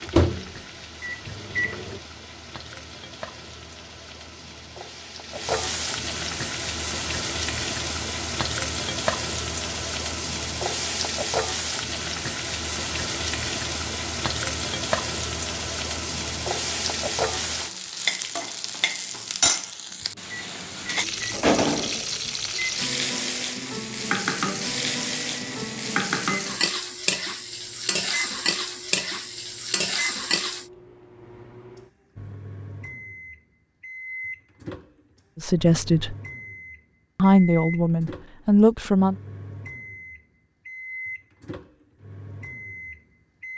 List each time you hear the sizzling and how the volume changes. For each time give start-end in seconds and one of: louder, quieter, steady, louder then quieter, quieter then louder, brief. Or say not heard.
0.0-30.6 louder.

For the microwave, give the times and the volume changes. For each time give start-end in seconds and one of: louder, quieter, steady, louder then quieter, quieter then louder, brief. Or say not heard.
0.0-2.0 brief
20.0-43.5 steady.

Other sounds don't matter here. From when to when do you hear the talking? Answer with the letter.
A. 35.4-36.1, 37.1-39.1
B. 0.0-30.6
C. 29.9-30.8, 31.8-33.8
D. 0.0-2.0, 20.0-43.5
A.